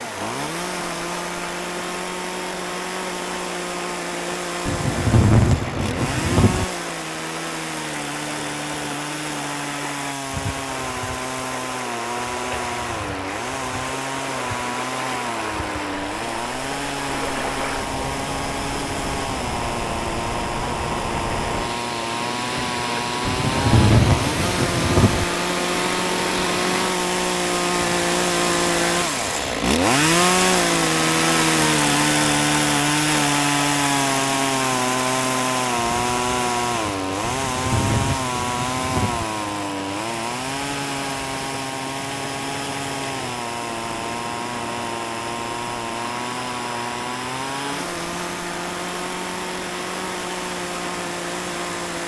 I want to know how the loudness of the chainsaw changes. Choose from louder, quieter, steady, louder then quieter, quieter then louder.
louder then quieter.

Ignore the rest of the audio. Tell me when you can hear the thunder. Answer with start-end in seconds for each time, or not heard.
4.7-6.7, 23.2-25.2, 37.2-39.2.